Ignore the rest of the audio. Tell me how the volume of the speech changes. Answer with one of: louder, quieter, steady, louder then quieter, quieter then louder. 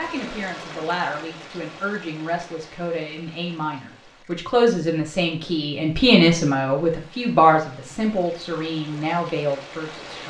louder then quieter.